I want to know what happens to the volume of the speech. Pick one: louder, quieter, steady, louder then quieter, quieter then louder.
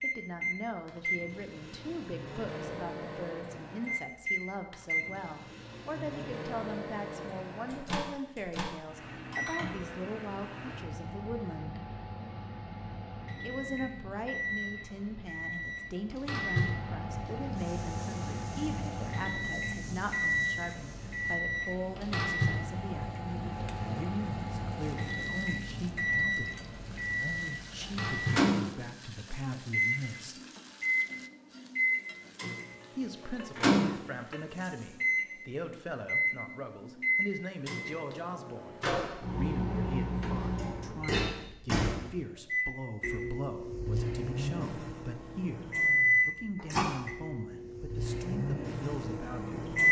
steady.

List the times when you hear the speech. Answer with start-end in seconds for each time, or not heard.
0.0-11.8, 13.4-30.4, 33.0-49.6.